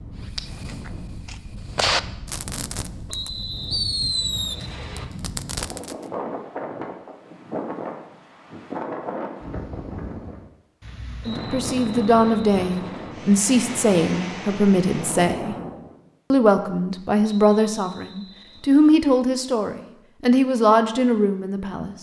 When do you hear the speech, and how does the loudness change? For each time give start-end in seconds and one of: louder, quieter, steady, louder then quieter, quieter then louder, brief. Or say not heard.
11.2-15.6 steady
16.3-21.9 quieter then louder.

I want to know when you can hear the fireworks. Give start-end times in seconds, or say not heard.
0.3-6.0.